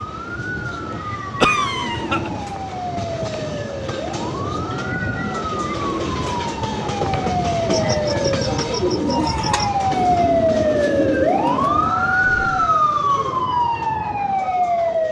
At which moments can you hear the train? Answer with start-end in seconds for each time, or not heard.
0.0-15.0.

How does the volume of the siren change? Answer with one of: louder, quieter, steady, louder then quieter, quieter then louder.
louder.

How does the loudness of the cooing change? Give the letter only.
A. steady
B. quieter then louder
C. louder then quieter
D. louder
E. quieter
D.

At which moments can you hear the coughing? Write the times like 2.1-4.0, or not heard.
1.4-2.3.